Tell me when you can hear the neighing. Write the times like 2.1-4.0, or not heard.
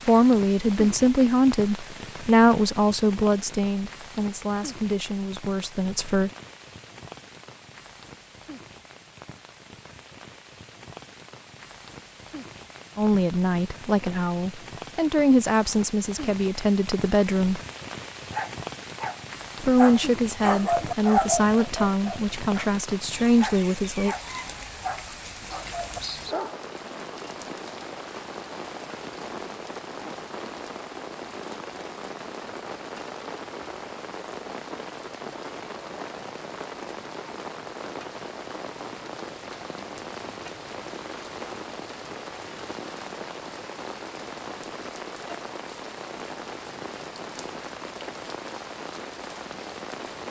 not heard.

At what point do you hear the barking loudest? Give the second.
21 s.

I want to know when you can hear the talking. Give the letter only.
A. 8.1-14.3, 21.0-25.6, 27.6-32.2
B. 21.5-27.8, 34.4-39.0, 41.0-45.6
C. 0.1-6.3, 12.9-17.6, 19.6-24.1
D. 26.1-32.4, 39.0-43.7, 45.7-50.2
C.